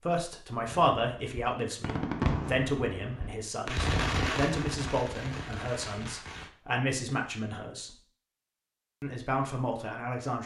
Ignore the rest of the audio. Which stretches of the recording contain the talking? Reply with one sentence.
The talking can be heard from 0.1 to 7.9 s and from 9.0 to 10.4 s.